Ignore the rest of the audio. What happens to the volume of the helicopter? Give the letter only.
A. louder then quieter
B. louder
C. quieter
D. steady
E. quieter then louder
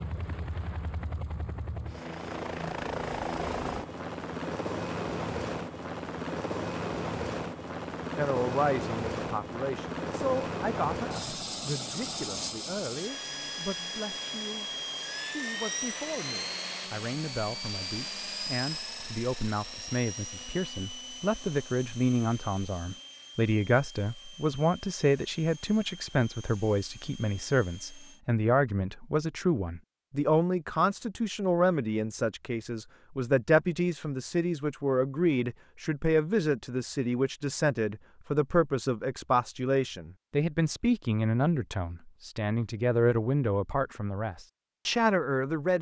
C.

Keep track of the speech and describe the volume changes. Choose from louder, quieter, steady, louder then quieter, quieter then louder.
louder.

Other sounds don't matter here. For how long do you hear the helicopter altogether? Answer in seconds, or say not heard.
28 s.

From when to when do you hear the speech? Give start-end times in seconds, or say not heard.
8.2-45.7.